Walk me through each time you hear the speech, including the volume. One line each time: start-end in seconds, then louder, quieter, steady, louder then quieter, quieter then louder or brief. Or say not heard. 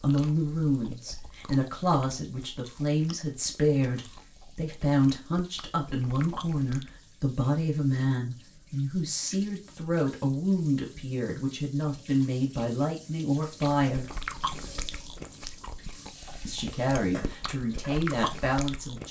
0.0-14.1 steady
16.4-19.0 brief.